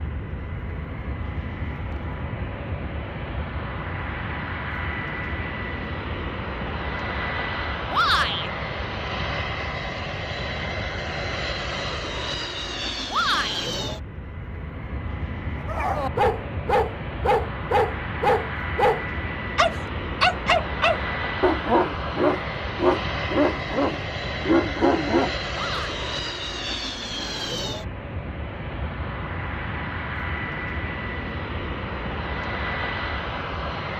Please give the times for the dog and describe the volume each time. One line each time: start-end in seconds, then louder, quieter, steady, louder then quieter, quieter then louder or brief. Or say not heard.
15.7-25.4 steady.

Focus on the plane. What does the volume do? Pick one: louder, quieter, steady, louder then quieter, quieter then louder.
steady.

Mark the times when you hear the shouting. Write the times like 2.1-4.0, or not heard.
7.9-8.5, 13.1-13.7, 25.5-25.9.